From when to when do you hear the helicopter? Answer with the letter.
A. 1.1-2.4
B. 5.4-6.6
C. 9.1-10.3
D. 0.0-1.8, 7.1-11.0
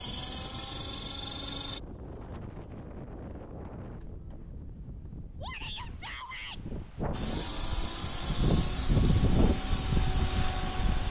D.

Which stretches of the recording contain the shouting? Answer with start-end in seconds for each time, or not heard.
5.4-6.6.